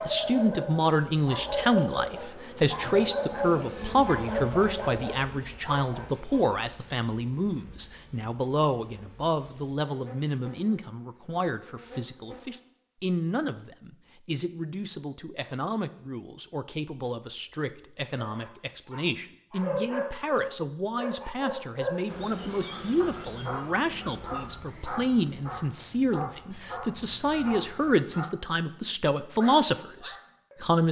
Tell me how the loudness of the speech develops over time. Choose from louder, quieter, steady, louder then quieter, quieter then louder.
quieter then louder.